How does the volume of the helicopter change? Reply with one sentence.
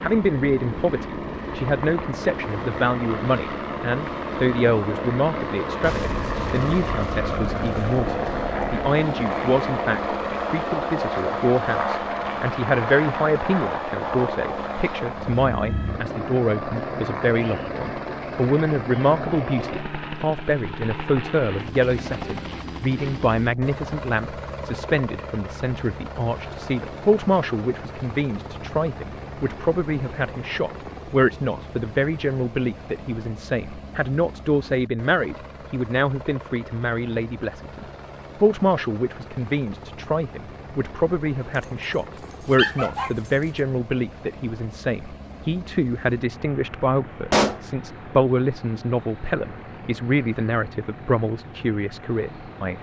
The volume of the helicopter goes down.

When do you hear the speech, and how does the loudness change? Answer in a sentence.
You can hear the speech from 0.0 to 52.7 s, at a steady volume.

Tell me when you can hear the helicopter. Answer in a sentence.
The helicopter can be heard from 0.0 to 52.7 s.